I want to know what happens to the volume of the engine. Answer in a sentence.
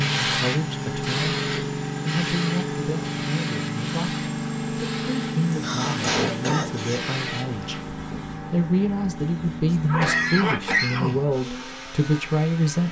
The loudness of the engine goes down.